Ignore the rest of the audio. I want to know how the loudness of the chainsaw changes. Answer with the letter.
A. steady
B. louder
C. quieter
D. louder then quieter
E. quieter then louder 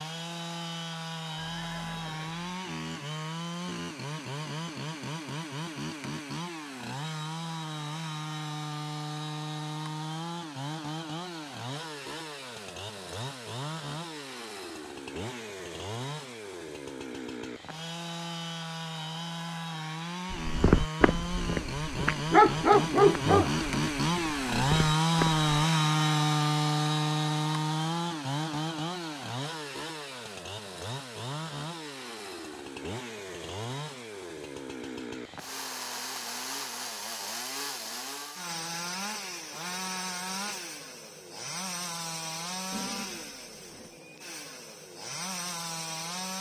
D.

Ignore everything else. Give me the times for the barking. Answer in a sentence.
You can hear the barking from 20.3 to 25.4 s.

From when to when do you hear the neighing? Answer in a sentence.
The neighing can be heard from 1.4 to 2.6 s and from 42.7 to 44.0 s.